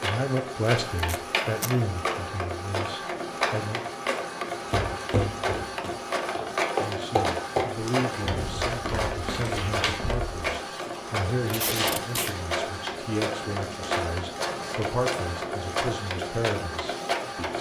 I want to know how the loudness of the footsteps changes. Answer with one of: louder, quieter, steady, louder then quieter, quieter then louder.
louder then quieter.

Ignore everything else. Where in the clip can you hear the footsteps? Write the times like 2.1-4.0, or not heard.
4.7-10.3.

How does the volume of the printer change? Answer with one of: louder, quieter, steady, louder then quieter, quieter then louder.
steady.